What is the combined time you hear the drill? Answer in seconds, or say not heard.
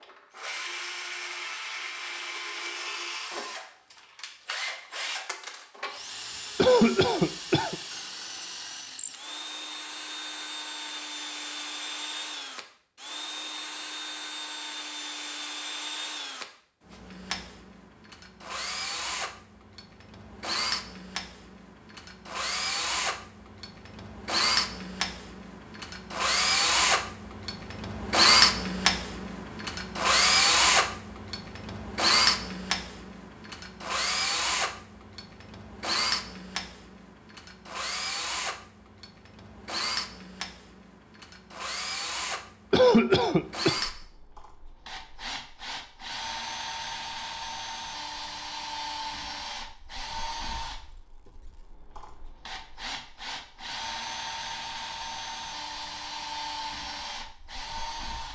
58 s.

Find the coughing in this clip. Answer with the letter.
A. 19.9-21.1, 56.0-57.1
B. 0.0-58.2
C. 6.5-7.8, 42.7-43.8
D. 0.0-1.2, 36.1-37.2
C.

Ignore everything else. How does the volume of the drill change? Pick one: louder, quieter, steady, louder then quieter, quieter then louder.
louder then quieter.